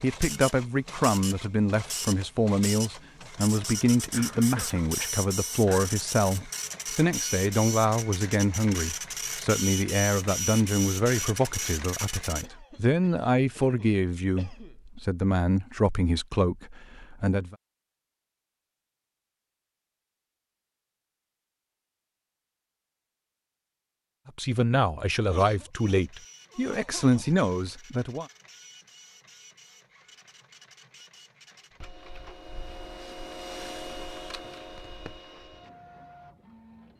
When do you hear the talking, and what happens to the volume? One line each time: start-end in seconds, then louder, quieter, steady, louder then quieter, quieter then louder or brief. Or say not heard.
0.0-17.6 steady
24.2-28.2 steady.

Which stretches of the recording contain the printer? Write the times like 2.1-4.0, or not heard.
0.0-12.4, 25.7-36.9.